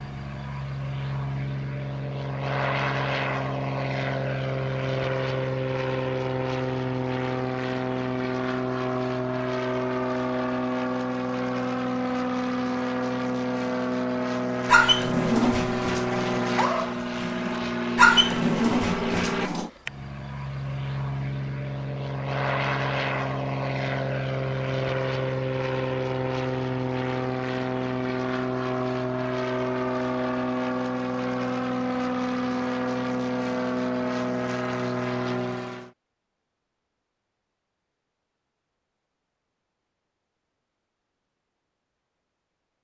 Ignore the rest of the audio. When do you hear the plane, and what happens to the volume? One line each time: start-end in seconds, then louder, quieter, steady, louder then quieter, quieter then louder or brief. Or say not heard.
0.0-35.9 steady.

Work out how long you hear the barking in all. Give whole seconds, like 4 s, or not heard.
5 s.